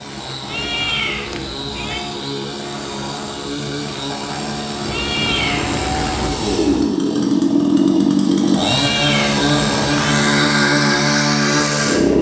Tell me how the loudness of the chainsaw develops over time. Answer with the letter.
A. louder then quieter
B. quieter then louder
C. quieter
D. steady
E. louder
E.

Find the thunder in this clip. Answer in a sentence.
The thunder can be heard from 5.0 to 6.8 s.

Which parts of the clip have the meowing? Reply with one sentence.
The meowing can be heard from 0.5 to 2.0 s, from 4.9 to 5.8 s and from 8.6 to 10.2 s.